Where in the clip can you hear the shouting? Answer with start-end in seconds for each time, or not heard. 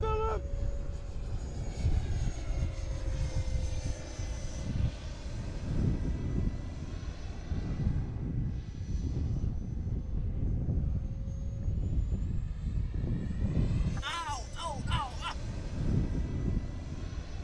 0.0-0.5, 14.0-15.3.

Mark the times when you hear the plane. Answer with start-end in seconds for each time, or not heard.
0.0-17.3.